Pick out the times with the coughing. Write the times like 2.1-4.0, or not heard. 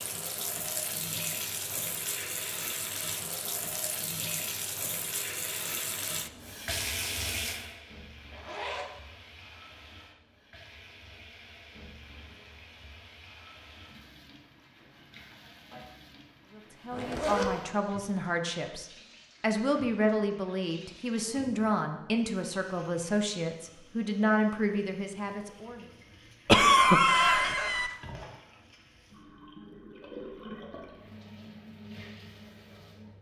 26.4-27.9.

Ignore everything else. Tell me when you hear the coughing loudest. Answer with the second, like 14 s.
27 s.